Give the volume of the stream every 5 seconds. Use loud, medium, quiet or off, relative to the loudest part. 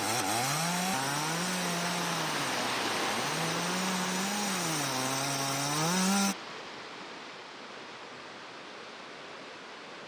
loud, medium.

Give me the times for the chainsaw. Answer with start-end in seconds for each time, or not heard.
0.0-6.3.